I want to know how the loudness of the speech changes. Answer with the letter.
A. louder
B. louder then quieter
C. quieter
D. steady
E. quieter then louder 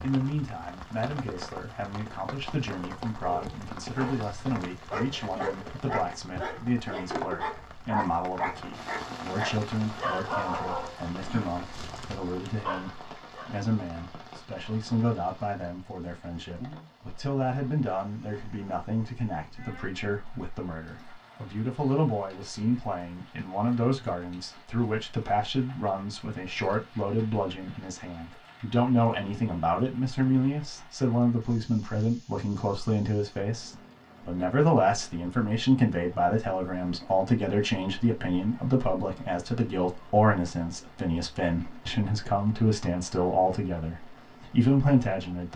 A.